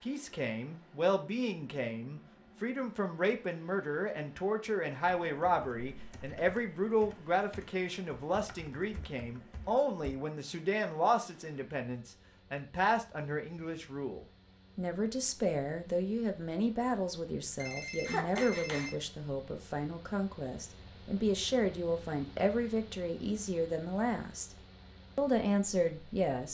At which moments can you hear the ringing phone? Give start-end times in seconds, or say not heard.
17.6-18.9.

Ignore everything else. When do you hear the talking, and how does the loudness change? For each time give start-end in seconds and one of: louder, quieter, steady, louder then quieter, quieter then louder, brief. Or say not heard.
0.0-24.6 steady
25.1-26.4 brief.